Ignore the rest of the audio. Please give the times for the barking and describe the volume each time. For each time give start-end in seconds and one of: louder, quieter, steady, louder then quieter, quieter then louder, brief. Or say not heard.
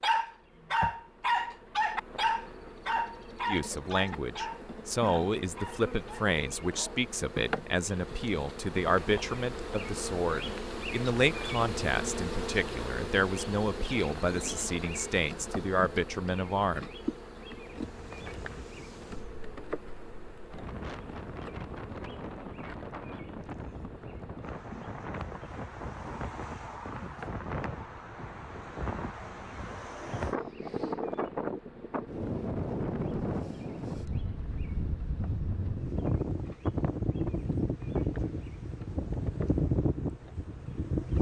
0.0-7.0 quieter.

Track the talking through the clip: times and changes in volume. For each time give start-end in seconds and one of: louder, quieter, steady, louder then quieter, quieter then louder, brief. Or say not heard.
3.5-16.9 steady.